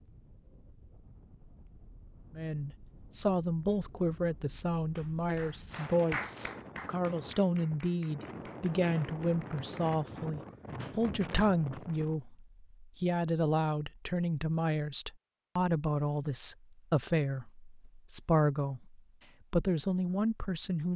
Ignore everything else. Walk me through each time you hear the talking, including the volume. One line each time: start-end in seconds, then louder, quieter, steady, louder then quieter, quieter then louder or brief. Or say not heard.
2.4-20.9 steady.